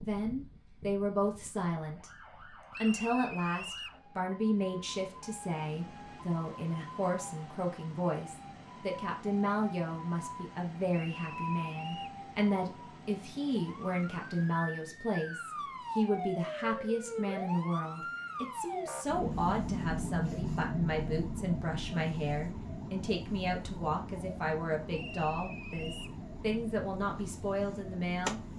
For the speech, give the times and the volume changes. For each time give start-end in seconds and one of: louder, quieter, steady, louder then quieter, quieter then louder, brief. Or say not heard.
0.0-2.1 brief
2.8-28.4 steady.